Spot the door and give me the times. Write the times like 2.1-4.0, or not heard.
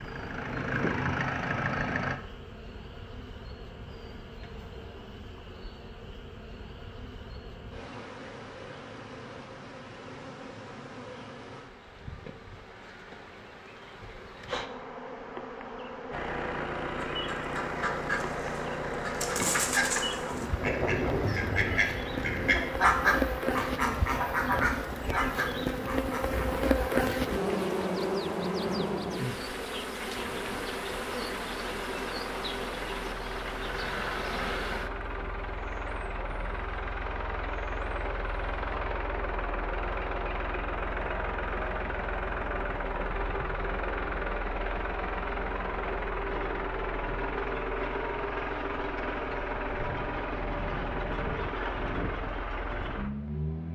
not heard.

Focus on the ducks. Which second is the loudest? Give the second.
23 s.